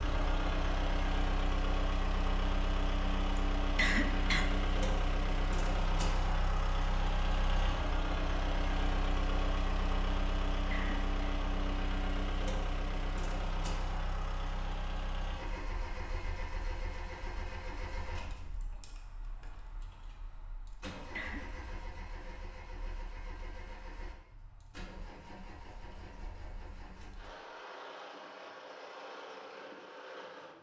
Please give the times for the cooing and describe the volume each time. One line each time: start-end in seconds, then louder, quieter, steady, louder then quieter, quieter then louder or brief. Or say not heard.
not heard.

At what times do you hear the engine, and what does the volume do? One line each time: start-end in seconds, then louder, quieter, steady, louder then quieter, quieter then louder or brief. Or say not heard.
0.0-30.5 quieter.